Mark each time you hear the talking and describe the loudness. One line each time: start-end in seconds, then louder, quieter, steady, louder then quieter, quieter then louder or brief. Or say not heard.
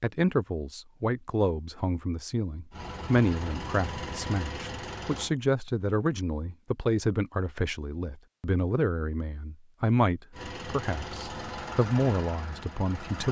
0.0-13.2 steady.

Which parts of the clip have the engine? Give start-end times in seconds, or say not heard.
2.7-5.3, 10.3-13.2.